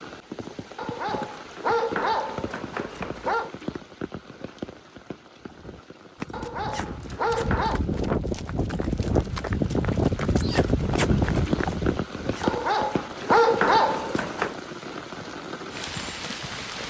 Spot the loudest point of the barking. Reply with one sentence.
The volume of the barking peaks at 13 seconds.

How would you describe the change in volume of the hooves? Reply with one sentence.
The volume of the hooves goes up.